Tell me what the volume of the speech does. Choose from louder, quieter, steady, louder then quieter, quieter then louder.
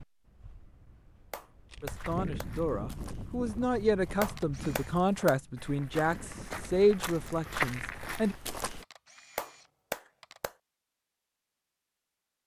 louder.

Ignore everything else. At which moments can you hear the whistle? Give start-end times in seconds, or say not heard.
not heard.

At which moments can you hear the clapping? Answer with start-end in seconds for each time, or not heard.
1.3-2.5, 4.2-5.3, 9.3-10.6.